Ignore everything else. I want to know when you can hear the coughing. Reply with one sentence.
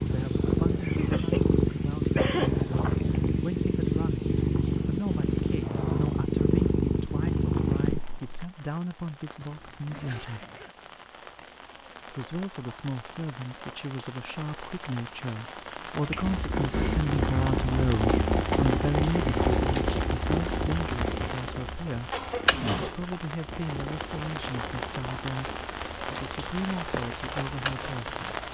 You can hear the coughing from 0.8 to 2.5 s and from 21.9 to 22.9 s.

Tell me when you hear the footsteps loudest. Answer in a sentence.
The volume of the footsteps peaks at 27 seconds.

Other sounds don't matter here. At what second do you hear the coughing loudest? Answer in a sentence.
The volume of the coughing peaks at 2 seconds.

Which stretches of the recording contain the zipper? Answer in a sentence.
The zipper can be heard from 9.4 to 10.7 s.